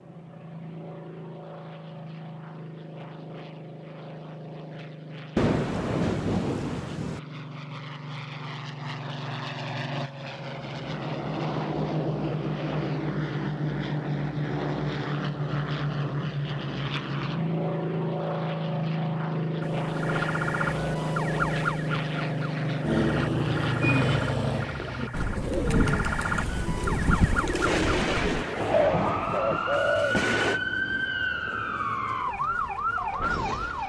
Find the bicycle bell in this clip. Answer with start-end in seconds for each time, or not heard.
not heard.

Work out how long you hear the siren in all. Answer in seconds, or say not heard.
14 s.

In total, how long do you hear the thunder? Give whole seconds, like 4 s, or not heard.
5 s.